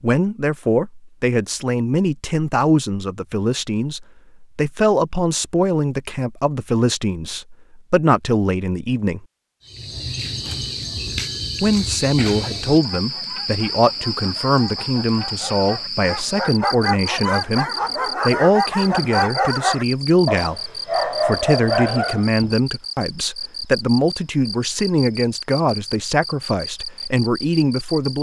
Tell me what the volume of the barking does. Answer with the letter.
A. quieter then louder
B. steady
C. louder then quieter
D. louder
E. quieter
D.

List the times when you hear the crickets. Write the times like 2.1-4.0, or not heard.
9.7-28.1.